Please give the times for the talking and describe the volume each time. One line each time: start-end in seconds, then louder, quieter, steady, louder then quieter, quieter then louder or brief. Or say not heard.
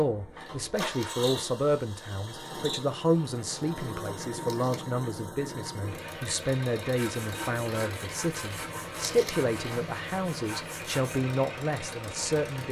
0.0-12.6 steady.